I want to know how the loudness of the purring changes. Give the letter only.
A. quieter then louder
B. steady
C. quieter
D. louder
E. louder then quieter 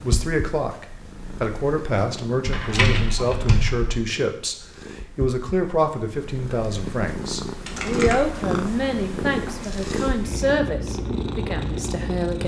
D.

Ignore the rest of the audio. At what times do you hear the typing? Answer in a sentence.
You can hear the typing from 2.5 to 4.0 s and from 7.7 to 9.7 s.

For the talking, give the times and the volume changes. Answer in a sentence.
You can hear the talking from 0.0 to 12.4 s, at a steady volume.